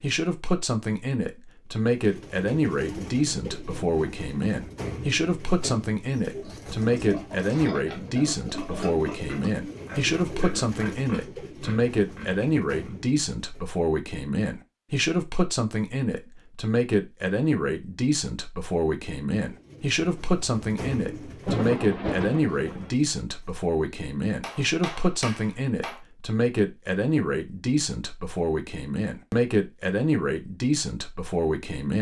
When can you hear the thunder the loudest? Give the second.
22 s.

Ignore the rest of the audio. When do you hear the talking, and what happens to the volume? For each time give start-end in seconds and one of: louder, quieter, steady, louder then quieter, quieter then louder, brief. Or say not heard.
0.0-31.9 steady.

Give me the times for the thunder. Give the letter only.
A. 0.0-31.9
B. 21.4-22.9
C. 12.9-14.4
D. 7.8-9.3
B.